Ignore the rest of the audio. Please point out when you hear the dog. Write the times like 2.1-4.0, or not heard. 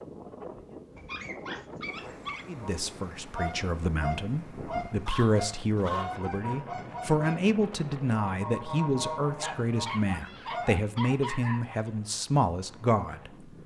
0.9-2.5, 5.0-6.2, 9.3-11.9.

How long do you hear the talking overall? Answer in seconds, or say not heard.
11 s.